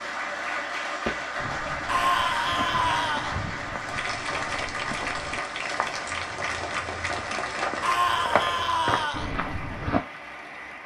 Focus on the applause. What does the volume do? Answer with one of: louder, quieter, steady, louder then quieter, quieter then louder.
quieter.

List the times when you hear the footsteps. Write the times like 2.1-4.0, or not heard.
1.1-10.0.